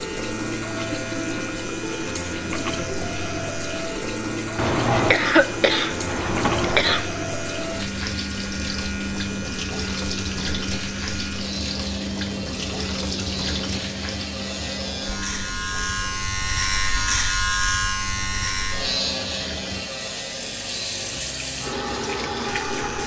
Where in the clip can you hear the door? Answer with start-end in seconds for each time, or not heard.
not heard.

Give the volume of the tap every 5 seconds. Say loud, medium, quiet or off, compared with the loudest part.
loud, loud, loud, medium, loud.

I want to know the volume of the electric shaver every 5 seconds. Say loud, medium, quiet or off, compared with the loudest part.
medium, medium, medium, loud, medium.